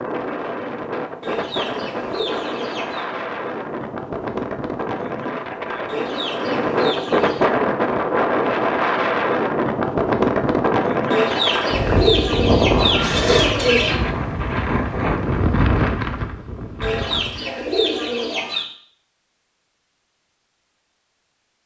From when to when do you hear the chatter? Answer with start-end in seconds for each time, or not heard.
not heard.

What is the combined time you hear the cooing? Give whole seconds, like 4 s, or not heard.
8 s.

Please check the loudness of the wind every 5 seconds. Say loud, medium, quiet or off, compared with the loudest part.
medium, loud, loud, loud, off.